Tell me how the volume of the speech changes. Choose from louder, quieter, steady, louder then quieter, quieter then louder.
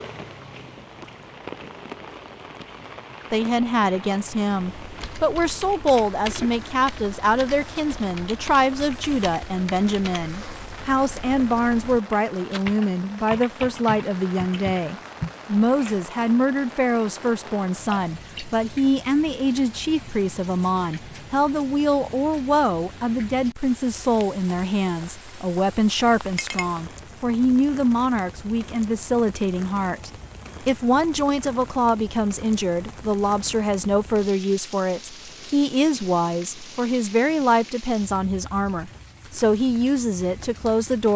steady.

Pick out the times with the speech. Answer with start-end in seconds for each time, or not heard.
3.3-41.1.